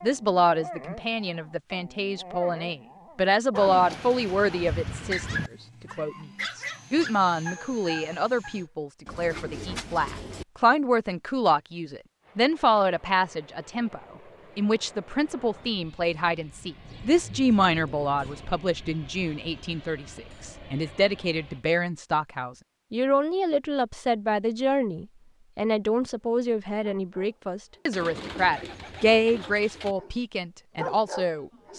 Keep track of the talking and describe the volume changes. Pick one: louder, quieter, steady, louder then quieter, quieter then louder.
steady.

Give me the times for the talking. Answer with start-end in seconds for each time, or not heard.
0.0-31.7.